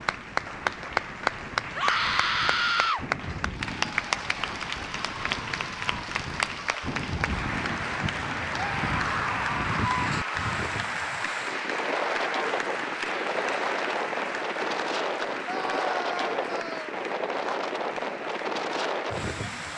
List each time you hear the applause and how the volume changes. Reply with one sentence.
The applause can be heard from 0.0 to 19.7 s, getting quieter.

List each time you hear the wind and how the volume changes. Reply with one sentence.
The wind can be heard from 0.0 to 19.7 s, getting louder.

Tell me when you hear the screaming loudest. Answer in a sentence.
The volume of the screaming peaks at 3 seconds.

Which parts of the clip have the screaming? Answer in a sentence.
The screaming can be heard from 1.8 to 3.0 s, from 8.6 to 10.6 s and from 15.4 to 17.0 s.